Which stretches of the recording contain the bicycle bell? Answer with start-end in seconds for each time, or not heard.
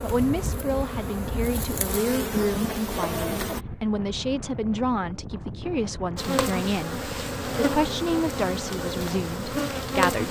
not heard.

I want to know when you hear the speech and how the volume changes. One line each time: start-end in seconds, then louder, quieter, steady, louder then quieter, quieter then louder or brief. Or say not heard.
0.0-10.2 steady.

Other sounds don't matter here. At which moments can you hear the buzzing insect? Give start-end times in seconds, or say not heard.
0.0-3.6, 6.2-10.2.